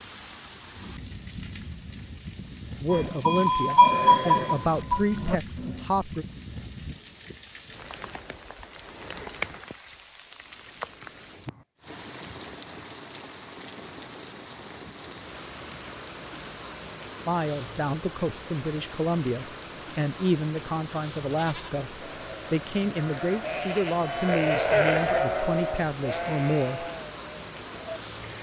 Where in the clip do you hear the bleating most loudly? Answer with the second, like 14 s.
4 s.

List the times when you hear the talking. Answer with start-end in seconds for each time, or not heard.
2.8-6.2, 17.2-26.9.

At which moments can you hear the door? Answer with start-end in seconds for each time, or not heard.
not heard.